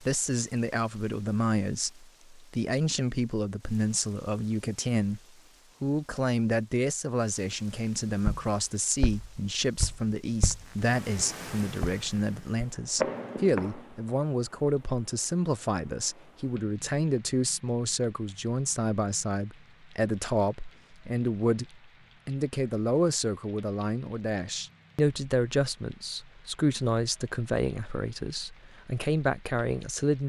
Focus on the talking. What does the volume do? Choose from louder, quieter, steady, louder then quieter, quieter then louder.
steady.